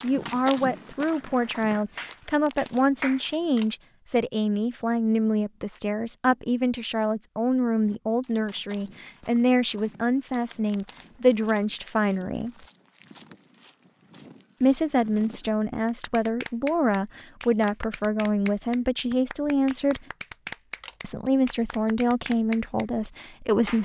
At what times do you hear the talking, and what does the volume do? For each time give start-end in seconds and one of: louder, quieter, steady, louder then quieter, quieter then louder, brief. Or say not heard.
0.0-12.5 steady
14.6-20.1 steady
21.0-23.8 brief.